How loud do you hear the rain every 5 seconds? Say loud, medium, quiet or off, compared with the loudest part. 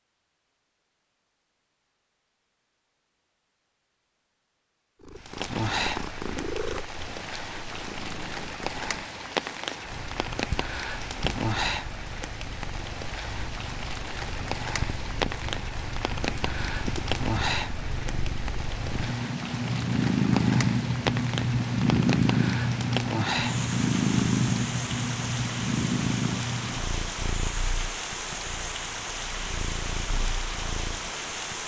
off, loud, loud, loud, loud, loud, loud.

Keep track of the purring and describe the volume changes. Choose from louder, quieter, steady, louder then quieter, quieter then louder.
louder then quieter.